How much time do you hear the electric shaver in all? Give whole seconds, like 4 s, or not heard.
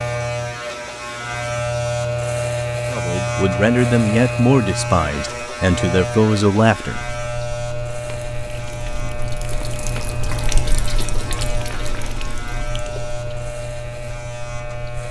15 s.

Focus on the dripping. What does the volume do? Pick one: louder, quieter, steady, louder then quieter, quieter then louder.
louder then quieter.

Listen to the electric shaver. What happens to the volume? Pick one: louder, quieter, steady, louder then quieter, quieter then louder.
quieter.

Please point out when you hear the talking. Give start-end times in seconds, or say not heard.
2.9-7.0.